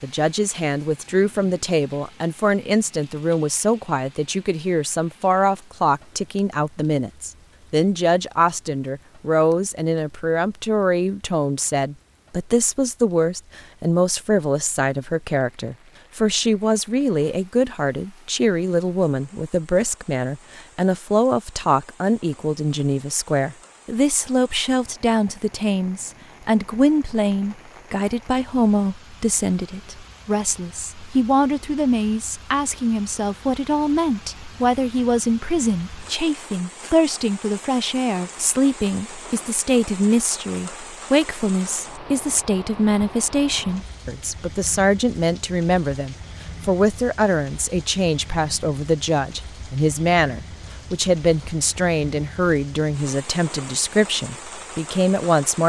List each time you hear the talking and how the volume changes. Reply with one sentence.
The talking can be heard from 0.0 to 55.6 s, at a steady volume.